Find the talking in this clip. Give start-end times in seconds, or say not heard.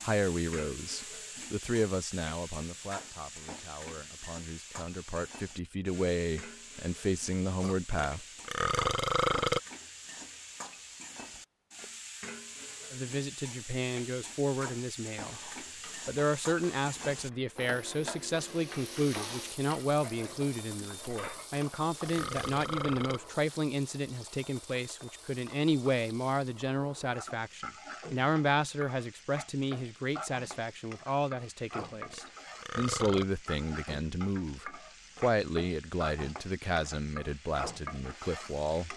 0.0-8.2, 12.9-15.4, 16.1-38.9.